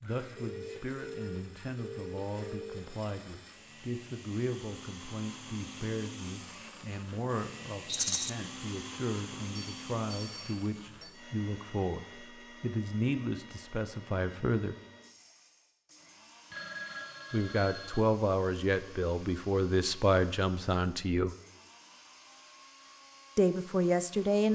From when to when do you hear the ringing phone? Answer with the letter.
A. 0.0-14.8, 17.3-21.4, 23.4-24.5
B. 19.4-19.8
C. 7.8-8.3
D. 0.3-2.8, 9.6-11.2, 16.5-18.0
D.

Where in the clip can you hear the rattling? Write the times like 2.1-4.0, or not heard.
7.8-8.3.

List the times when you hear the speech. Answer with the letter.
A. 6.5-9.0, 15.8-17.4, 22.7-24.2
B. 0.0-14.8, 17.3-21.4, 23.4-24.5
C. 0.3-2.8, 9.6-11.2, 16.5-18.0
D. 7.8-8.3
B.